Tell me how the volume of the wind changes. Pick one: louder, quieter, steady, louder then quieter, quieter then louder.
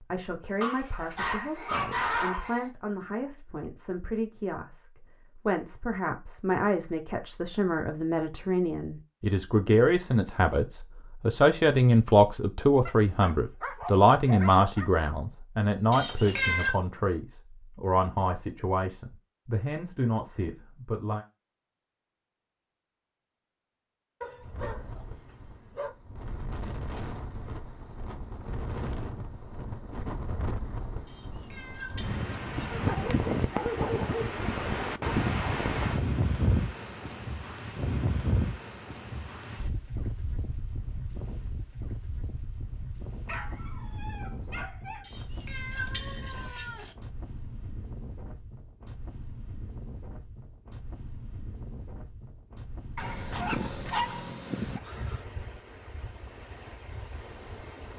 louder then quieter.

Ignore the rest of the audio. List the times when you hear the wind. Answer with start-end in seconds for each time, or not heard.
24.4-57.9.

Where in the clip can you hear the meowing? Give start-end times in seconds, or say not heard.
15.9-16.8, 31.1-32.8, 45.0-46.9.